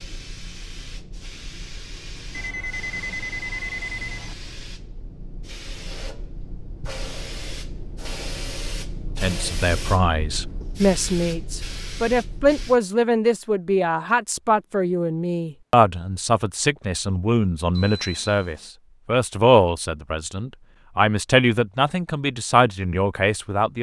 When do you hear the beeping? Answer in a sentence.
The beeping can be heard from 2.3 to 4.3 s and from 17.7 to 18.7 s.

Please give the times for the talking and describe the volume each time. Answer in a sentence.
The talking can be heard from 9.1 to 23.7 s, at a steady volume.